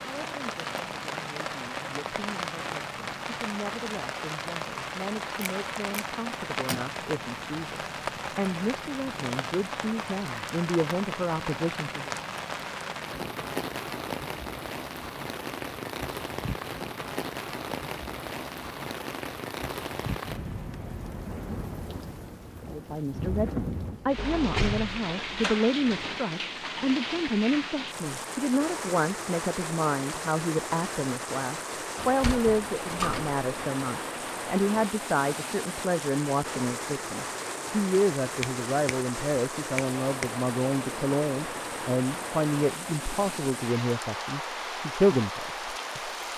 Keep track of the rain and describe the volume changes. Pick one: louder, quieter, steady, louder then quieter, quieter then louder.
steady.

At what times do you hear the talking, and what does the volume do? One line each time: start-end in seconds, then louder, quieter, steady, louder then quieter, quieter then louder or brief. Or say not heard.
0.0-12.1 louder
22.7-46.3 steady.